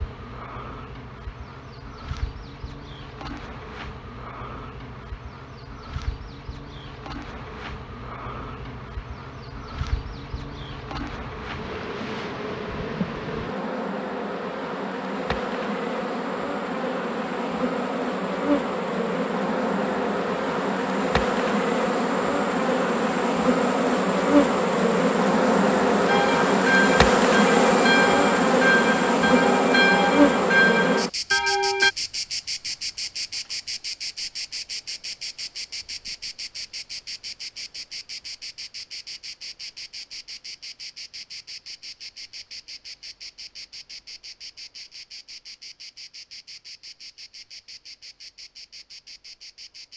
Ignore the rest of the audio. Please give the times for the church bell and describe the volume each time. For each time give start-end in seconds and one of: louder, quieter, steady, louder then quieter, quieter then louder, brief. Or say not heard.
26.1-31.9 steady.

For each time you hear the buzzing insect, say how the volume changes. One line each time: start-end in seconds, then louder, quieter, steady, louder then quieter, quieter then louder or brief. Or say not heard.
0.0-49.9 louder then quieter.